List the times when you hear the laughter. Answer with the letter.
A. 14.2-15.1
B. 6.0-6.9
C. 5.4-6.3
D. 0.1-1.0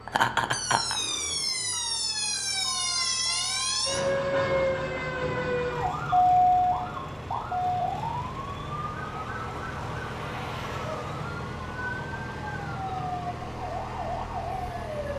D.